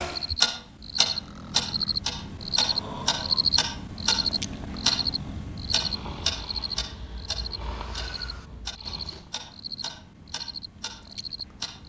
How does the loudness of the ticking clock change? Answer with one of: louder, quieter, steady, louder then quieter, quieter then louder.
quieter.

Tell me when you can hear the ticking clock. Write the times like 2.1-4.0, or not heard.
0.0-11.8.